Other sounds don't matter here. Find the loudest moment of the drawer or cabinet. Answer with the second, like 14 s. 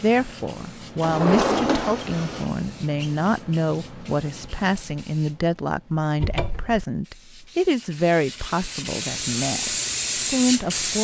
1 s.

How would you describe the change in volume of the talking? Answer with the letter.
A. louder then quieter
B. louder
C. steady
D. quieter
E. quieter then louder
C.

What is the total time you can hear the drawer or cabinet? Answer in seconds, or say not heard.
2 s.